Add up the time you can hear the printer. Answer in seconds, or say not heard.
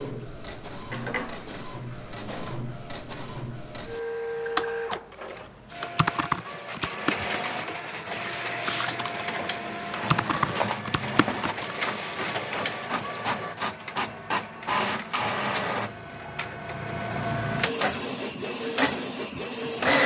20 s.